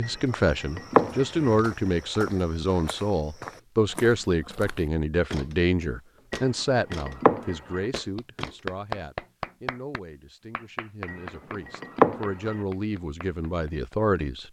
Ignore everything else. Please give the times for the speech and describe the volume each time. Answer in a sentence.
The speech can be heard from 0.0 to 14.4 s, getting quieter then louder.